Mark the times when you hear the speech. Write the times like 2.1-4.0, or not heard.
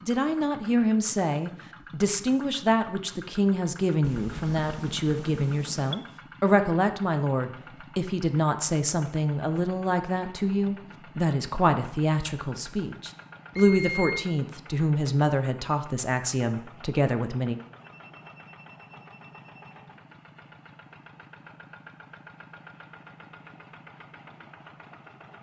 0.0-17.6.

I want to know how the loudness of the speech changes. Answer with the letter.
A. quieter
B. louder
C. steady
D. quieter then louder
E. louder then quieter
C.